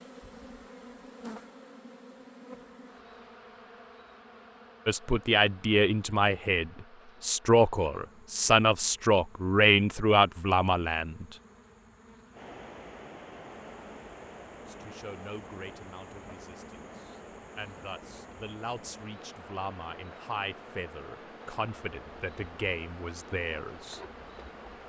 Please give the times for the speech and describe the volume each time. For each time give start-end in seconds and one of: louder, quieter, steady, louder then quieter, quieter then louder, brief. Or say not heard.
4.8-11.2 quieter then louder
14.7-24.0 louder.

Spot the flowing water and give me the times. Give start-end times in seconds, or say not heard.
12.3-24.8.